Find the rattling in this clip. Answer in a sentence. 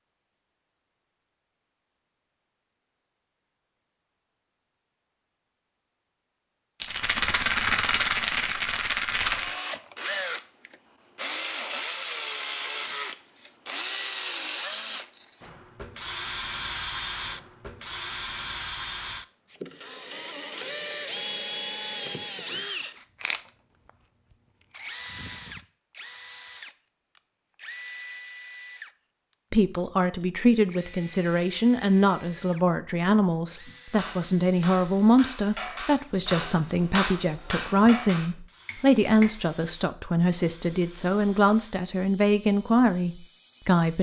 You can hear the rattling from 6.8 to 9.6 s.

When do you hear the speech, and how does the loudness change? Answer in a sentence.
The speech can be heard from 29.5 to 43.9 s, at a steady volume.